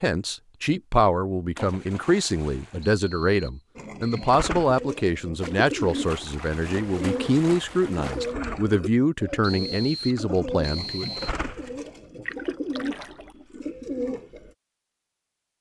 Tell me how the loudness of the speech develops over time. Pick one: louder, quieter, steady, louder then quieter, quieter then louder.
steady.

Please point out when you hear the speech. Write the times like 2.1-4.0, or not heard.
0.0-11.1.